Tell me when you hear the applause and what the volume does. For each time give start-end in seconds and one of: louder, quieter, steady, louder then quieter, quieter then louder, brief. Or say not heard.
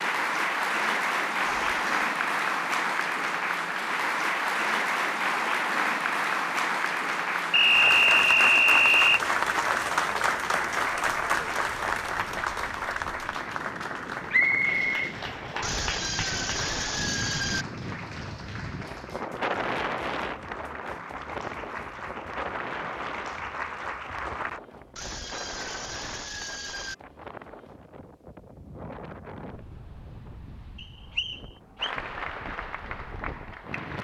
0.0-24.6 quieter
31.8-34.0 brief.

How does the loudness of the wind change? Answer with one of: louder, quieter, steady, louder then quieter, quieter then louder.
louder then quieter.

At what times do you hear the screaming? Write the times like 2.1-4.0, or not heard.
1.4-1.9, 15.6-17.6, 24.9-26.9.